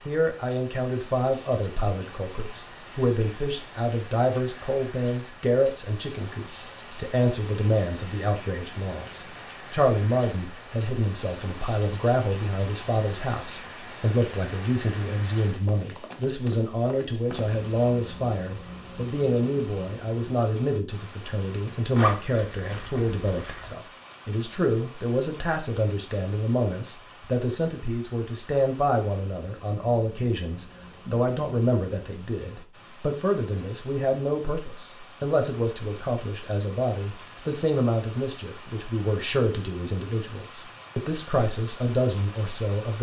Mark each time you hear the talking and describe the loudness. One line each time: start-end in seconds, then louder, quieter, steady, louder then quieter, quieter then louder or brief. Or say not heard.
0.1-42.9 steady.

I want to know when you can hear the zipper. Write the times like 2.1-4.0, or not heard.
21.9-23.8.